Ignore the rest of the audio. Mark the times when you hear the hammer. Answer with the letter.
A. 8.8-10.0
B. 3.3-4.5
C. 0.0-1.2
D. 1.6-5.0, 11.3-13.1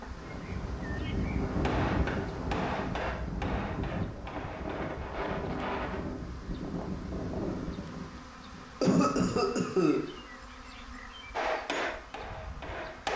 D.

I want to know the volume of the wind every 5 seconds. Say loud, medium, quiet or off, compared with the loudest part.
loud, loud, off.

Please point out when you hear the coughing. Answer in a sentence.
You can hear the coughing from 8.8 to 10.0 s.